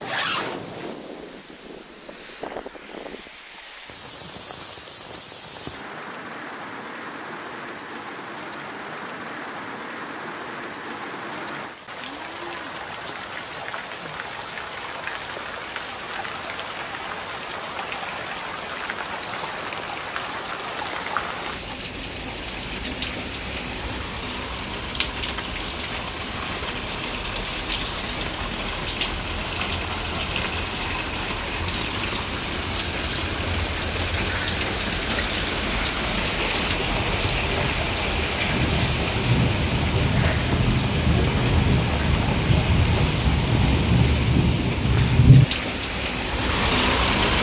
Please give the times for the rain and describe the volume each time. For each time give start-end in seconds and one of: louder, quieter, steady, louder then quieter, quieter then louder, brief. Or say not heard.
0.1-47.3 louder.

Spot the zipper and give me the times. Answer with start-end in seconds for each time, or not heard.
0.0-0.9.